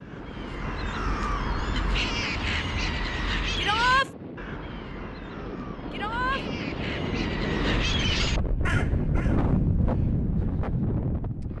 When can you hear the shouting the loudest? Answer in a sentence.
The loudest moment of the shouting is at 4 seconds.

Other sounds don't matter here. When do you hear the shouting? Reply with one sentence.
You can hear the shouting from 3.5 to 4.1 s and from 5.9 to 6.5 s.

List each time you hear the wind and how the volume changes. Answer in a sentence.
You can hear the wind from 0.0 to 11.5 s, getting louder.